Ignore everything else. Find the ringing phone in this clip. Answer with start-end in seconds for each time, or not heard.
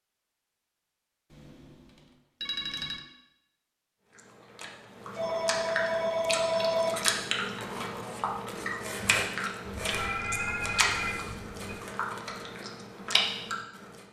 1.3-1.8, 2.4-3.0, 5.2-6.9, 9.7-11.8.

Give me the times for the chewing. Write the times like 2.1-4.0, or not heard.
4.2-14.0.